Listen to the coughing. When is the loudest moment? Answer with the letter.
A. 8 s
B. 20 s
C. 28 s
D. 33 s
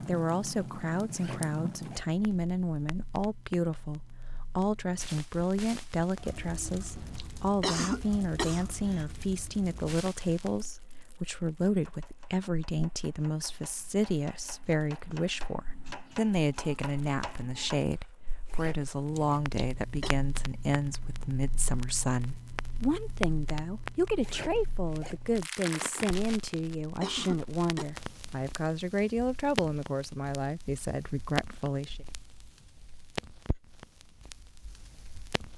A.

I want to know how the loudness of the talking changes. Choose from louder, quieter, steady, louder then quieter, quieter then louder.
steady.